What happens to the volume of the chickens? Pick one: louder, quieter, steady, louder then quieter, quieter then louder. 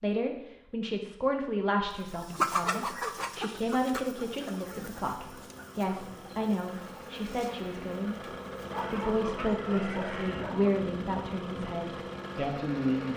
quieter.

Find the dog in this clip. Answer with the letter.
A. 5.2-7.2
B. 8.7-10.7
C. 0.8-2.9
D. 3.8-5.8
B.